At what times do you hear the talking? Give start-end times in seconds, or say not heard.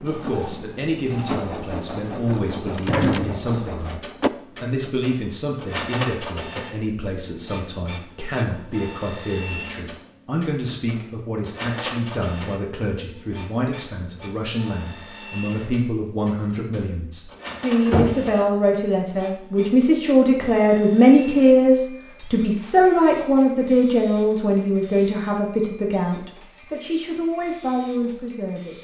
0.0-28.7.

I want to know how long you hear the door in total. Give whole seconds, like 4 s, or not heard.
3 s.